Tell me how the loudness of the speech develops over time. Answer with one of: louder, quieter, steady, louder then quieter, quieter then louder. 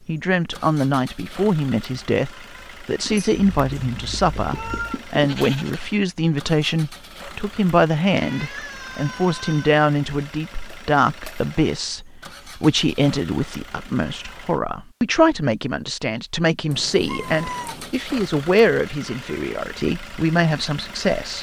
steady.